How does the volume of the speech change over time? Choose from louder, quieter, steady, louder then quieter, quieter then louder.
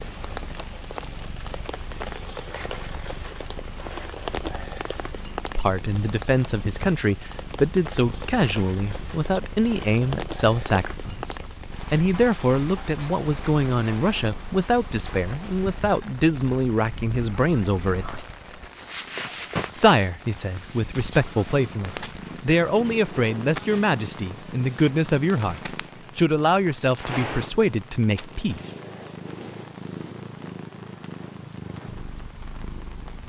steady.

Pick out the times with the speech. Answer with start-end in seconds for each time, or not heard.
5.5-18.2, 19.8-28.6.